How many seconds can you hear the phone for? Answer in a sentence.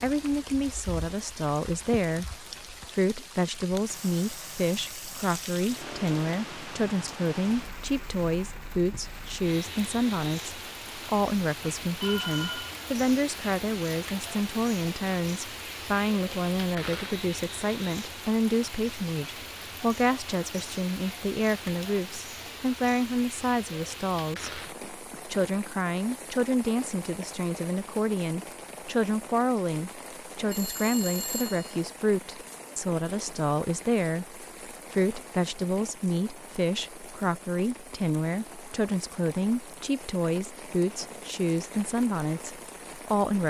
You can hear the phone for 2 seconds altogether.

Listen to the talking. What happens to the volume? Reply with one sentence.
The loudness of the talking stays about the same.